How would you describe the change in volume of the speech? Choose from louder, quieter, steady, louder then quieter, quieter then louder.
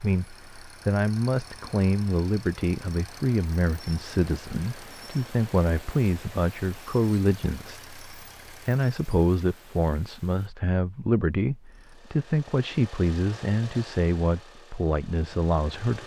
steady.